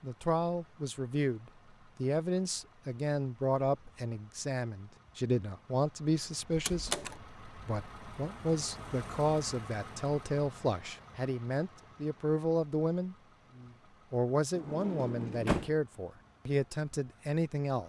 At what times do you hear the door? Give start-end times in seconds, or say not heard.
6.5-7.2, 14.6-15.8.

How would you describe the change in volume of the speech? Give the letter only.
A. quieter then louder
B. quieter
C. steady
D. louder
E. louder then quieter
C.